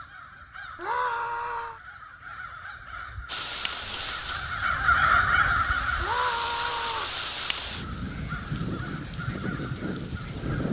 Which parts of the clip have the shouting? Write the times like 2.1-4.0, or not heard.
0.8-1.8, 6.0-7.2.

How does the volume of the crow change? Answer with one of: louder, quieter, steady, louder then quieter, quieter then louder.
louder then quieter.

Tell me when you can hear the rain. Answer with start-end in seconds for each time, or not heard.
3.2-10.6.